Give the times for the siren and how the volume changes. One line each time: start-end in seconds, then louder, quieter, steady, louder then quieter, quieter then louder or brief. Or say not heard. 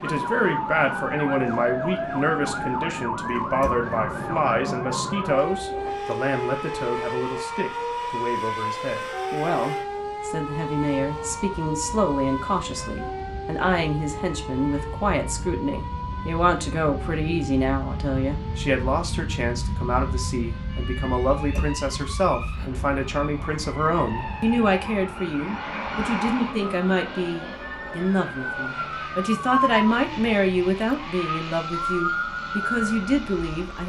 0.0-33.8 quieter then louder.